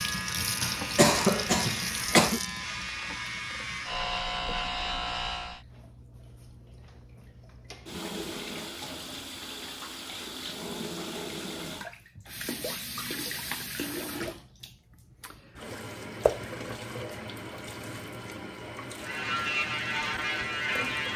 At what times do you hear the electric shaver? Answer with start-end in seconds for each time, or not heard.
0.0-5.7, 18.9-21.1.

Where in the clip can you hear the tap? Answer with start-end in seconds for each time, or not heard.
0.0-21.1.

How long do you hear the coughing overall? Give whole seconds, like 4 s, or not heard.
2 s.